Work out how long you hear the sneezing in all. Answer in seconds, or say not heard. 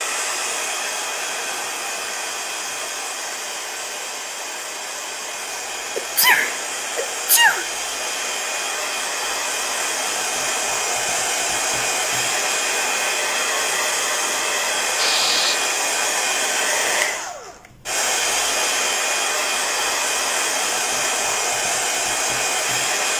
2 s.